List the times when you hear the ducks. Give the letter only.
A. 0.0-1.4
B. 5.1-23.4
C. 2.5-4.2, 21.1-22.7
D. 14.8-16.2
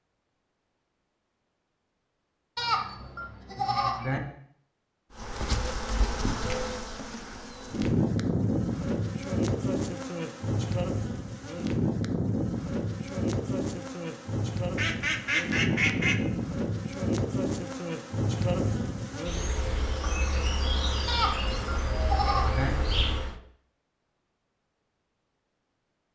D.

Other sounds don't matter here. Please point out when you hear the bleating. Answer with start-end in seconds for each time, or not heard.
2.5-4.2, 21.1-22.7.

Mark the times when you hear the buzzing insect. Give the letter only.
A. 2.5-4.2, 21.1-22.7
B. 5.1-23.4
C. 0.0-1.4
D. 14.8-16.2
B.